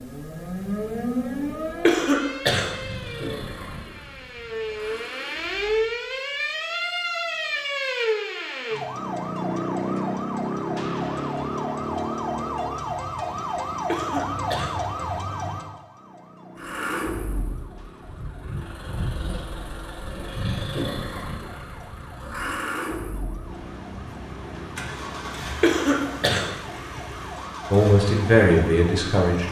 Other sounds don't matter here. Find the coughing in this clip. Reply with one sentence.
The coughing can be heard from 1.8 to 2.7 s, from 13.8 to 14.8 s and from 25.6 to 26.5 s.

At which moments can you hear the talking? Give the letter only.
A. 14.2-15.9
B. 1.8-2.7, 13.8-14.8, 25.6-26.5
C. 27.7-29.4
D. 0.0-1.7
C.